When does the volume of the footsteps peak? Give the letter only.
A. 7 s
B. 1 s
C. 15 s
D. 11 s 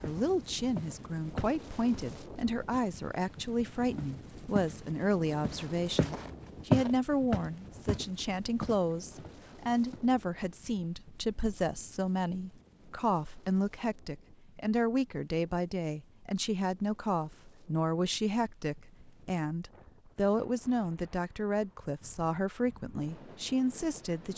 A.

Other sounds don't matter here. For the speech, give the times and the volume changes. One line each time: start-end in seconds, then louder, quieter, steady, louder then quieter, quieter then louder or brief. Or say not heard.
0.0-24.3 steady.